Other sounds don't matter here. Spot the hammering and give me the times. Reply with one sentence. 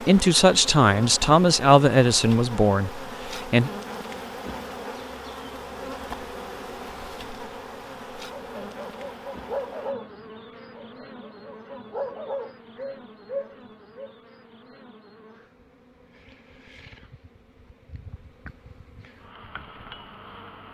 You can't hear the hammering here.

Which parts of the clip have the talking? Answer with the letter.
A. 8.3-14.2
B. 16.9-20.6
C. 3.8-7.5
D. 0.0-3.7
D.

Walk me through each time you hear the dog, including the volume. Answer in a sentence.
You can hear the dog from 8.3 to 14.2 s, getting quieter then louder.